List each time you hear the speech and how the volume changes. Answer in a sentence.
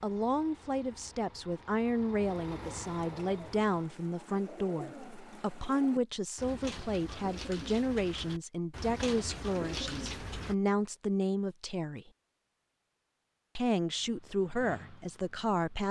The speech can be heard from 0.0 to 12.1 s, at a steady volume; and briefly from 13.6 to 15.8 s.